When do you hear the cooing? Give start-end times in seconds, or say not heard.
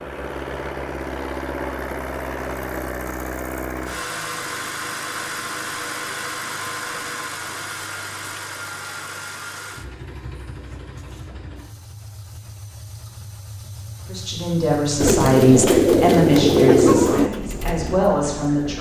15.0-17.3.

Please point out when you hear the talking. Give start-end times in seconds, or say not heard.
14.1-18.7.